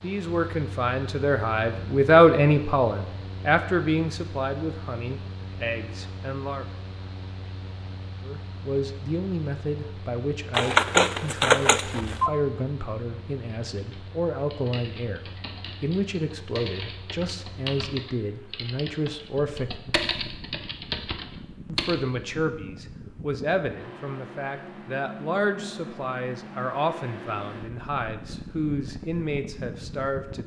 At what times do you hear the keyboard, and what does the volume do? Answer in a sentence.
You can hear the keyboard from 13.5 to 22.1 s, getting louder.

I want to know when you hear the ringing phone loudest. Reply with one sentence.
The loudest moment of the ringing phone is at 11 seconds.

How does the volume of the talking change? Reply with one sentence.
The volume of the talking goes down.